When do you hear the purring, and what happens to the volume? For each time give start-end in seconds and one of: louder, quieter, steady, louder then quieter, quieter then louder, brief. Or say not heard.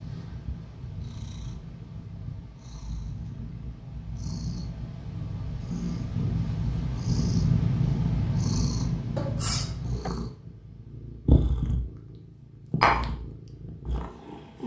0.0-14.6 louder then quieter.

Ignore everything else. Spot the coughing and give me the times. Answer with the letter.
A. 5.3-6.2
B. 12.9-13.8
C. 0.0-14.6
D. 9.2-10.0
D.